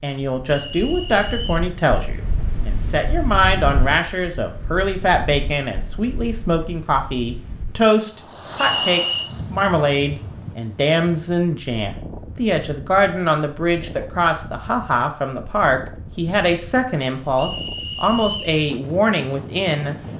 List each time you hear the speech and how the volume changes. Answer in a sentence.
You can hear the speech from 0.0 to 19.9 s, at a steady volume.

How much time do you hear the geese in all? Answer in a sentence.
You can't hear the geese here.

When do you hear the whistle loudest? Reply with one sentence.
The volume of the whistle peaks at 9 seconds.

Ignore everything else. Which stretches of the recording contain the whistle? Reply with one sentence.
The whistle can be heard from 0.7 to 1.7 s, from 8.6 to 9.3 s and from 17.4 to 18.6 s.